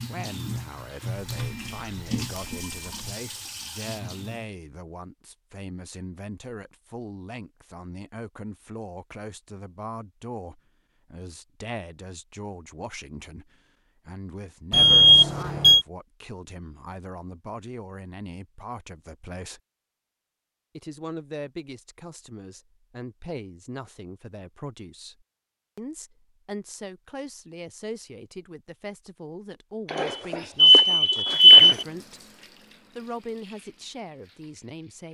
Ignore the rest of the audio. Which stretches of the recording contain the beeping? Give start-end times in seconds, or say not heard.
1.3-3.1, 14.7-15.8, 29.9-31.9.